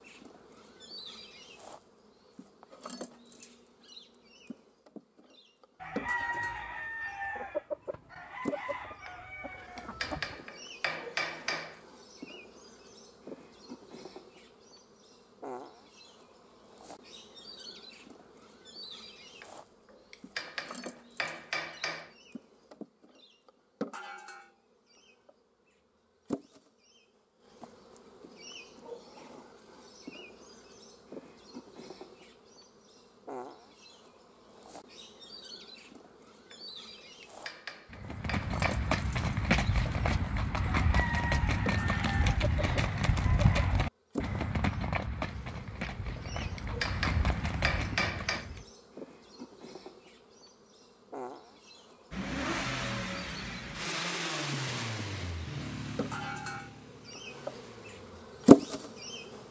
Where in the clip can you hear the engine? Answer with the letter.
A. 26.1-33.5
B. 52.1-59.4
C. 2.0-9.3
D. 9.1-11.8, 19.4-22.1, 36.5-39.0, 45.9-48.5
B.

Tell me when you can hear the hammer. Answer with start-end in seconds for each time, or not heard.
9.1-11.8, 19.4-22.1, 36.5-39.0, 45.9-48.5.